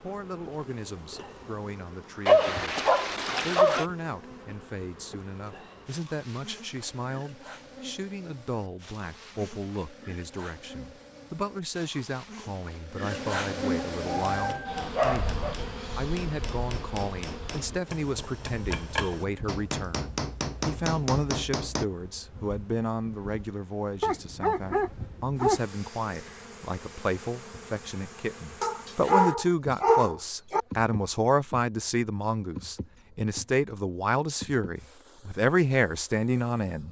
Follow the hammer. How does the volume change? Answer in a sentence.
The loudness of the hammer goes up.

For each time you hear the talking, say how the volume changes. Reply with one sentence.
You can hear the talking from 0.0 to 36.8 s, getting louder.